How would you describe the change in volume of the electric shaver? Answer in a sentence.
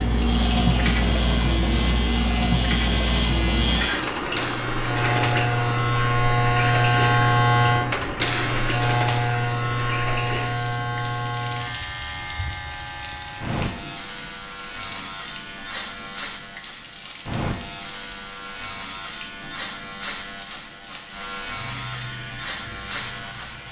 The volume of the electric shaver goes up, then down.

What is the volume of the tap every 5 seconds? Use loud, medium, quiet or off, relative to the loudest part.
loud, medium, quiet, quiet, quiet.